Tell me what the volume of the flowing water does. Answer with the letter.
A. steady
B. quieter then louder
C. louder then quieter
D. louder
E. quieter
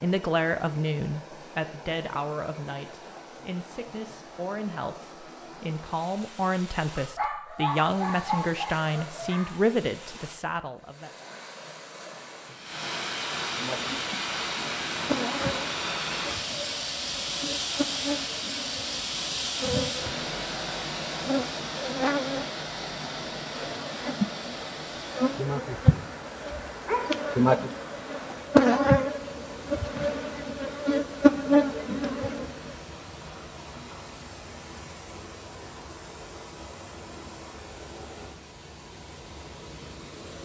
C.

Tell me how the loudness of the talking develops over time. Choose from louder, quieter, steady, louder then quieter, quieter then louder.
quieter then louder.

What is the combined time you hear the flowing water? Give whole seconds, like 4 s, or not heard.
40 s.